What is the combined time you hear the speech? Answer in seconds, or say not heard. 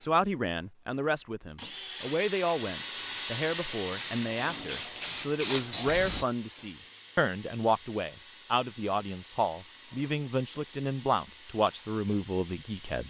13 s.